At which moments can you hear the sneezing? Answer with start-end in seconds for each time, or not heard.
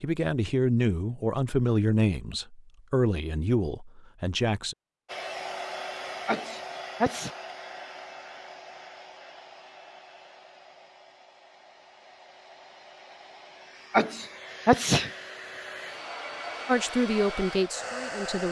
6.2-7.3, 13.9-15.1.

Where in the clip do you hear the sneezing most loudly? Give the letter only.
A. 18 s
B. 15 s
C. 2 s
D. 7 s
B.